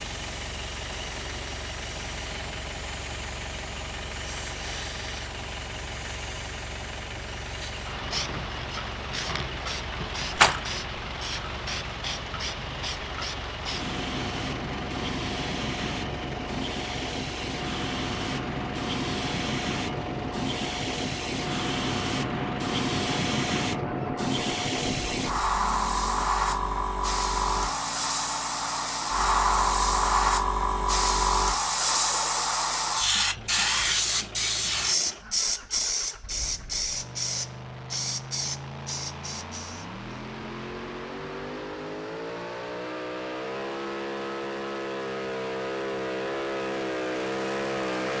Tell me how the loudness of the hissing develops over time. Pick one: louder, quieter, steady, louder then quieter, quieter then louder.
louder.